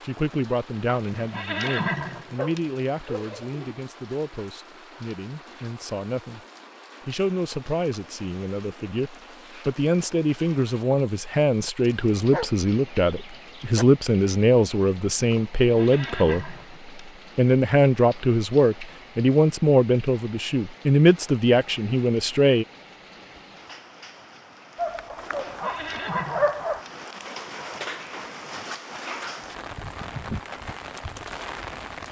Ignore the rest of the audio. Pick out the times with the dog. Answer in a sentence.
You can hear the dog from 2.4 to 3.8 s, from 11.8 to 13.8 s and from 24.8 to 26.9 s.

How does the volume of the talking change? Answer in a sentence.
The volume of the talking goes up.